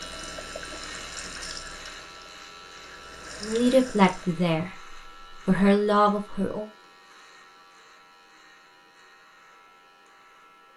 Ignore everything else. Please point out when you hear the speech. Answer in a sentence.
You can hear the speech from 3.4 to 6.7 s.